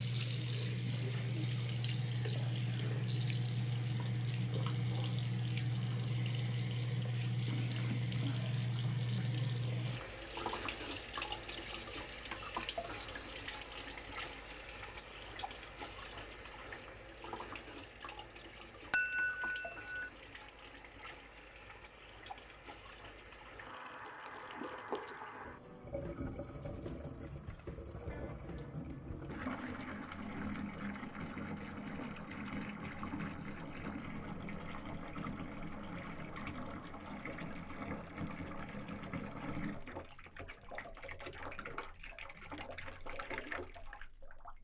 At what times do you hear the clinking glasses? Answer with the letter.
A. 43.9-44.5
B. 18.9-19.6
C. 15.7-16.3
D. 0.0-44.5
B.